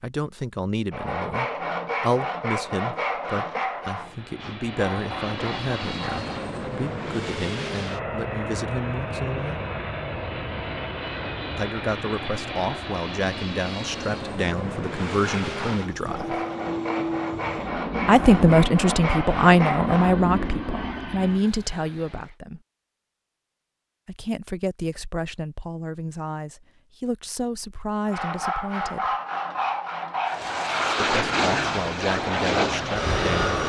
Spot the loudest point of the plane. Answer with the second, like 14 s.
33 s.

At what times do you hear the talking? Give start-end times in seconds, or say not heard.
0.0-9.6, 11.6-16.4, 18.1-22.6, 24.1-29.1, 31.0-33.5.